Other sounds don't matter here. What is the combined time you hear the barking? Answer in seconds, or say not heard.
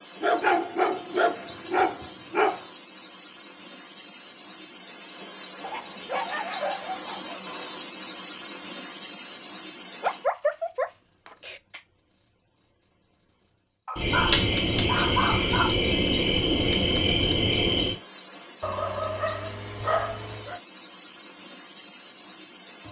10 s.